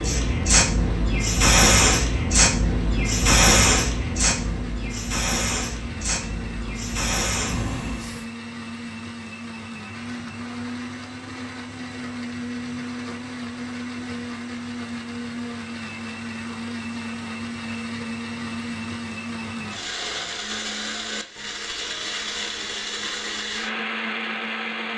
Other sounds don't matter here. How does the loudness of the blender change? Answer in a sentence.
The volume of the blender goes up.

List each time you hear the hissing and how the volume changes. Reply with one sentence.
You can hear the hissing from 0.0 to 8.2 s, getting quieter.